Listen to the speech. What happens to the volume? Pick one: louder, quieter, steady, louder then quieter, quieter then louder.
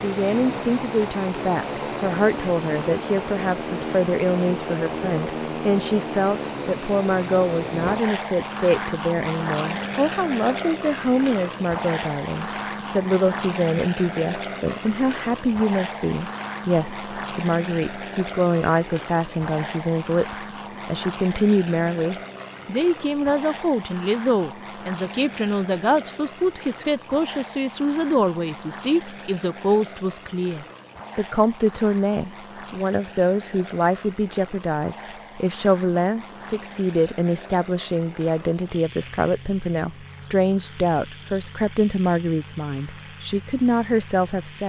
steady.